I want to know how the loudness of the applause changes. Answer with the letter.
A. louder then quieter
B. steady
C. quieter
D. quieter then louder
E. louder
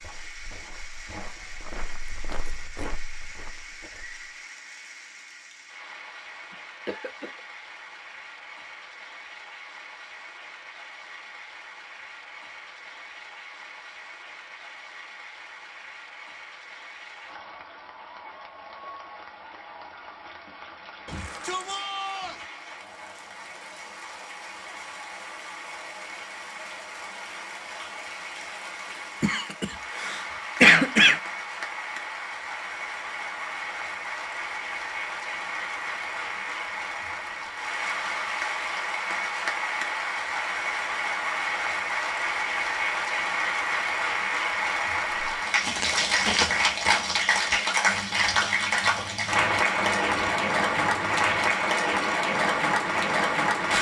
E.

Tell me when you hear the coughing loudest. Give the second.
31 s.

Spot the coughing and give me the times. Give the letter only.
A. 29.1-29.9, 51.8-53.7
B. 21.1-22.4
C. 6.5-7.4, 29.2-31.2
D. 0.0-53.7
C.